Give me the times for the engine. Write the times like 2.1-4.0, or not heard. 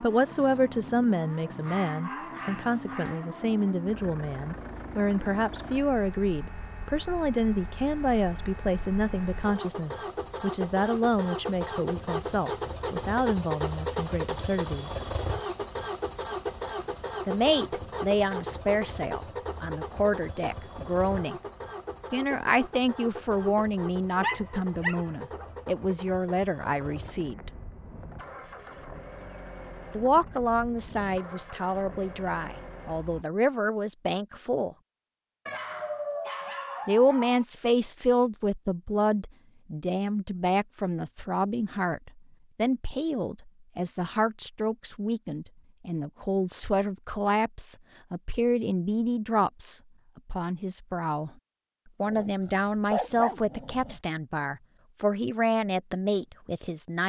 0.0-33.2.